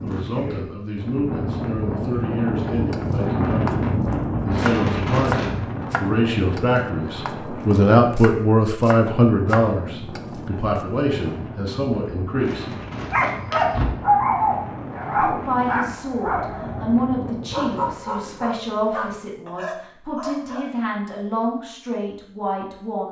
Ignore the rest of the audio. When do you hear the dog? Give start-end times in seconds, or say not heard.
13.1-20.6.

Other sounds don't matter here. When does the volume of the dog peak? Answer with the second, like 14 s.
14 s.